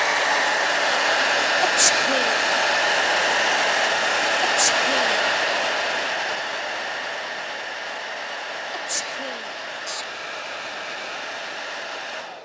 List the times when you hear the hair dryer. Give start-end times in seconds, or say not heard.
0.0-12.4.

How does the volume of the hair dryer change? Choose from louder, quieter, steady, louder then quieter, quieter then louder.
quieter.